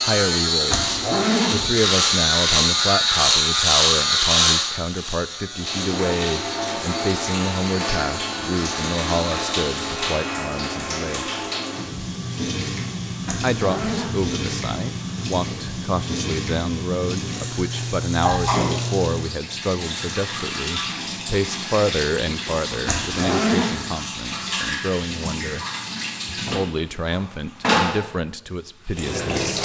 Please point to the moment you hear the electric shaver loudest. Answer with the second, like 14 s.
4 s.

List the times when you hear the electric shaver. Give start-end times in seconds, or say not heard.
0.0-10.6.